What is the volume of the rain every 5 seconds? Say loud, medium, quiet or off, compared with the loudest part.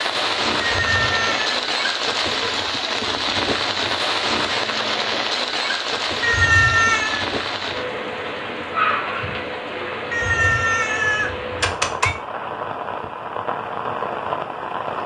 loud, loud, medium.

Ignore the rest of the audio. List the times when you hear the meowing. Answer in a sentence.
The meowing can be heard from 0.6 to 1.6 s, from 6.2 to 7.2 s and from 10.1 to 12.1 s.